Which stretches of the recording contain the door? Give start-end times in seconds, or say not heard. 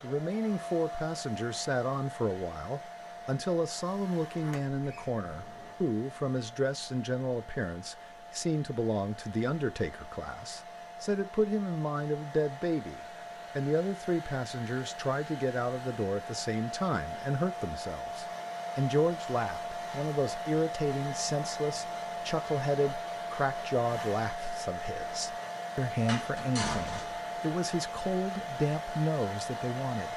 4.3-5.8, 26.1-27.2.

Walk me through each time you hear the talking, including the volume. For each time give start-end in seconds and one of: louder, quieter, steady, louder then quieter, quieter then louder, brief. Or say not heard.
0.0-30.1 steady.